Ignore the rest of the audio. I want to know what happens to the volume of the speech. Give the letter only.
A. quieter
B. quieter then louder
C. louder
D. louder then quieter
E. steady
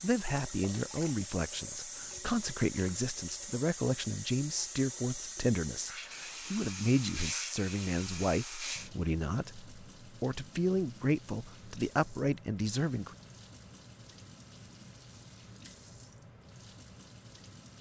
E.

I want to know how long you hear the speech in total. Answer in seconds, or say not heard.
13 s.